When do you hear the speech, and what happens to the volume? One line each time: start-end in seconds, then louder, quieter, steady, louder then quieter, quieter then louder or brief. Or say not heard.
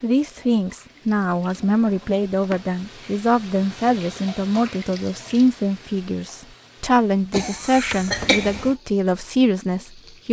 0.0-10.2 steady.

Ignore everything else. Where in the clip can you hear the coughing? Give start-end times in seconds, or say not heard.
7.3-8.7.